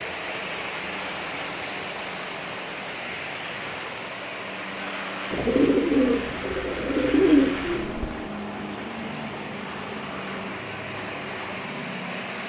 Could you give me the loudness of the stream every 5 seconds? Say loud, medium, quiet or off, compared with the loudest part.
loud, medium, loud.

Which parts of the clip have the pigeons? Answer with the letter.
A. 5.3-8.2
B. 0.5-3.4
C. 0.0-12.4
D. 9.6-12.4
A.